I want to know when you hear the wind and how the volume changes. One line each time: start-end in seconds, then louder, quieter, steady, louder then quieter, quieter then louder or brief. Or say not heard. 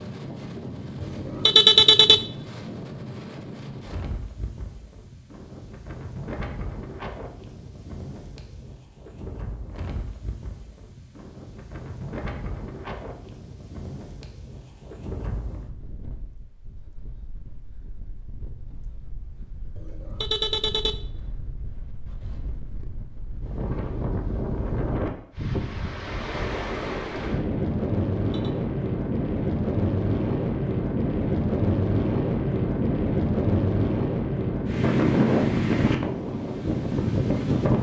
0.0-37.7 quieter then louder.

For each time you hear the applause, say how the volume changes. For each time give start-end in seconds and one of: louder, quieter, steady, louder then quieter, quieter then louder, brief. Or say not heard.
not heard.